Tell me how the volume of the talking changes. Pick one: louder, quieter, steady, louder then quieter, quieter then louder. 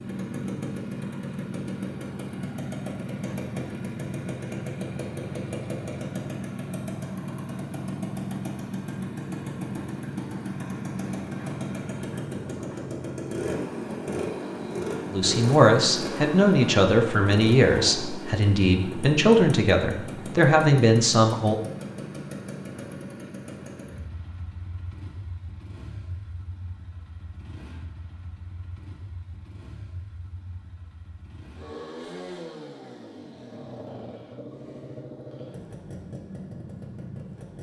quieter then louder.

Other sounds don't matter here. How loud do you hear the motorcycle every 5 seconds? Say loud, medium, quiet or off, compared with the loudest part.
loud, loud, loud, loud, medium, quiet, medium, medium.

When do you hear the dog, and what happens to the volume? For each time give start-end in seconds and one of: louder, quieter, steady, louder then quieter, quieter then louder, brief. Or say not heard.
not heard.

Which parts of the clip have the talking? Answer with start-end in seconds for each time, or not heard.
15.1-21.6.